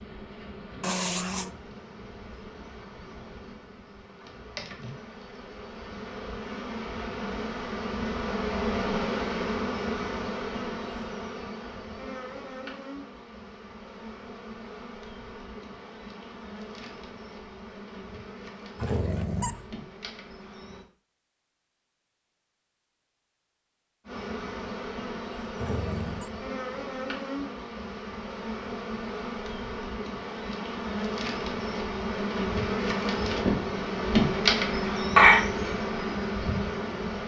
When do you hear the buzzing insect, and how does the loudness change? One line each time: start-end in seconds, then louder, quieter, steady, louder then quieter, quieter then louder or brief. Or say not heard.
0.0-20.9 louder then quieter
24.1-37.2 louder.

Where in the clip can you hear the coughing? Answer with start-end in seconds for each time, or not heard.
34.8-35.4.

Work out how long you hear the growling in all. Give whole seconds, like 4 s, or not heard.
2 s.